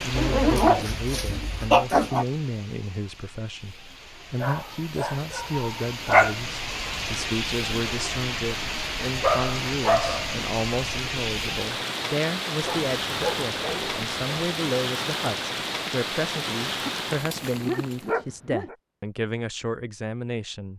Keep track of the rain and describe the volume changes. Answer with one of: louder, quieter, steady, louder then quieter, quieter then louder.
louder.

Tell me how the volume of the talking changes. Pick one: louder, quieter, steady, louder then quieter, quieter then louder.
steady.